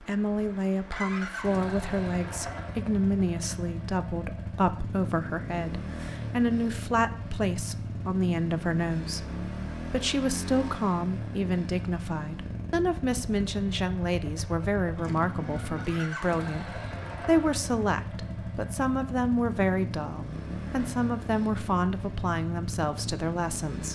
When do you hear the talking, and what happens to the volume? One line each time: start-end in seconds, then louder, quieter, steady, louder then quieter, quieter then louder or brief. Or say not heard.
0.0-23.9 steady.